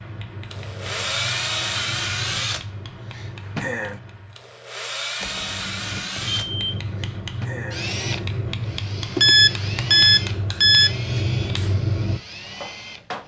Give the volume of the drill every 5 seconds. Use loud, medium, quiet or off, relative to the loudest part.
loud, loud, medium.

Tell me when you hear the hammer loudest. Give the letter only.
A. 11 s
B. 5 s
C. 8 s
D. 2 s
A.